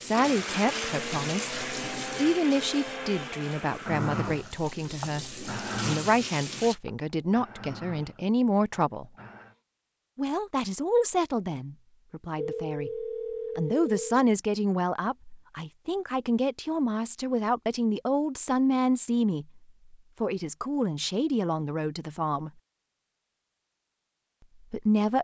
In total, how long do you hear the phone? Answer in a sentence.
You can hear the phone for 2 seconds altogether.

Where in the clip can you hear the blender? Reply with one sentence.
You can hear the blender from 0.0 to 9.6 s.